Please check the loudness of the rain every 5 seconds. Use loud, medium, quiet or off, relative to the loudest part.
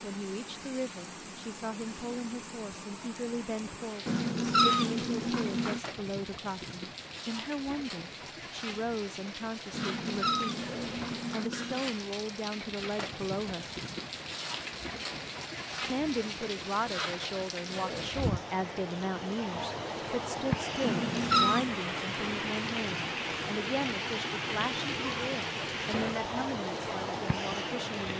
medium, medium, medium, loud, loud, loud.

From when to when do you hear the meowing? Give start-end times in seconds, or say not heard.
4.0-5.8, 9.7-11.8, 20.8-21.8.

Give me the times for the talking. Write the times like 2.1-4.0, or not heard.
0.0-10.7, 11.3-13.7, 15.8-28.1.